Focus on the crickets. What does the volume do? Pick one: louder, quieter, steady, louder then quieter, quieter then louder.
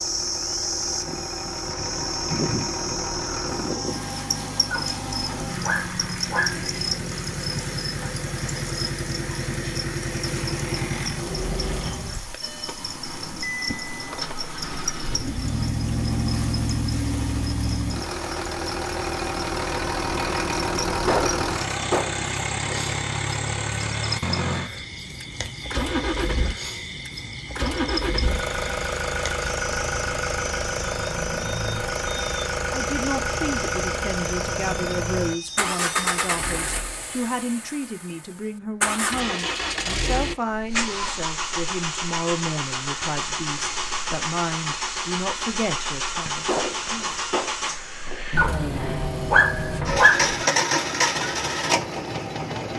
quieter.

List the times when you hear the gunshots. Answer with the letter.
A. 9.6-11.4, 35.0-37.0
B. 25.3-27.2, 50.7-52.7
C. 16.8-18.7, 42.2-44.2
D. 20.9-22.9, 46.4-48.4
D.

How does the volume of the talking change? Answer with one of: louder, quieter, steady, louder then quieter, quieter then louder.
steady.